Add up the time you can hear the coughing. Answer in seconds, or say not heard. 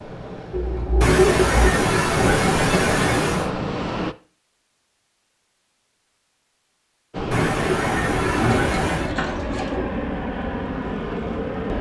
4 s.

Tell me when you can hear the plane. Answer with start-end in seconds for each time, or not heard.
0.0-4.2, 7.1-11.7.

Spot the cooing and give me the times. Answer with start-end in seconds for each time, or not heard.
0.5-1.7, 8.3-9.8.